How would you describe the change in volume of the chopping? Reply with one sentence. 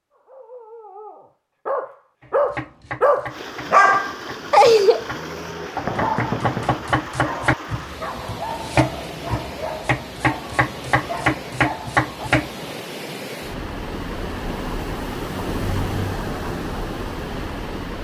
The volume of the chopping goes up.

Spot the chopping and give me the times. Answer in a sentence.
The chopping can be heard from 2.2 to 12.5 s.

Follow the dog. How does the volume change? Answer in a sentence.
The volume of the dog goes up, then down.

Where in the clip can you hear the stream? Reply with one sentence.
The stream can be heard from 3.2 to 17.9 s.